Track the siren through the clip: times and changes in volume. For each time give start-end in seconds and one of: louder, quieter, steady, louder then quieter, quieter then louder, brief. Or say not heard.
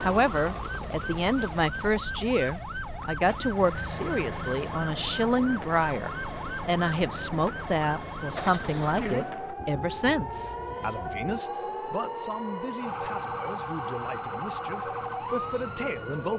0.0-16.3 steady.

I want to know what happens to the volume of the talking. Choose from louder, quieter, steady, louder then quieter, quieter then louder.
quieter.